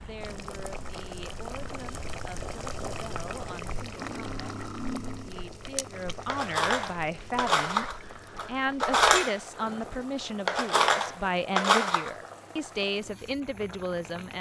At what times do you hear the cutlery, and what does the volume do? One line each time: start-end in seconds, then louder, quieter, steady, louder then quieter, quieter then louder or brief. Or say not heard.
4.0-12.2 louder.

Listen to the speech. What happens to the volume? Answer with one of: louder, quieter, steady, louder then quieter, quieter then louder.
louder.